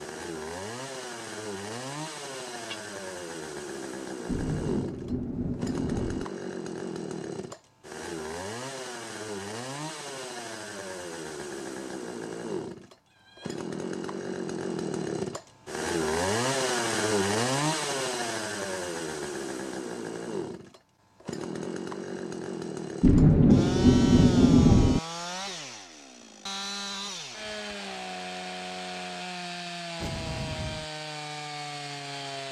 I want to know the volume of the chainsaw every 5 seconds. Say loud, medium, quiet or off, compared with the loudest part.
medium, medium, medium, loud, medium, medium, medium.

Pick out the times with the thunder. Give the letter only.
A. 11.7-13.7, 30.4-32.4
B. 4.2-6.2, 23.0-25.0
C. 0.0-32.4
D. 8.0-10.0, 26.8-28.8
B.